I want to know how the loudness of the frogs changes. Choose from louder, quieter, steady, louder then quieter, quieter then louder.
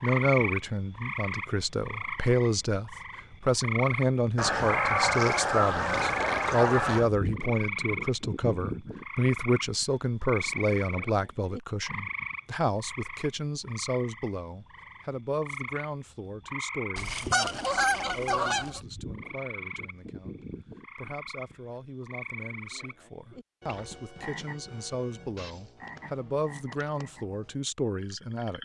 quieter.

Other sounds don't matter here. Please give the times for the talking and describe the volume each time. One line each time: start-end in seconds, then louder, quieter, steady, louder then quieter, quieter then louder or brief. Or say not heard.
0.0-28.5 quieter then louder.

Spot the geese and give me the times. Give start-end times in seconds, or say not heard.
4.3-7.1, 16.9-18.8.